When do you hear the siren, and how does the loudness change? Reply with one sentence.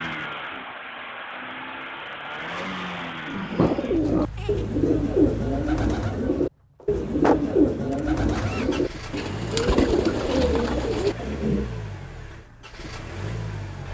You can't hear the siren here.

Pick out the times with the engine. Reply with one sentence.
You can hear the engine from 0.0 to 13.8 s.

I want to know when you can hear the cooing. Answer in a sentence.
The cooing can be heard from 3.2 to 11.7 s.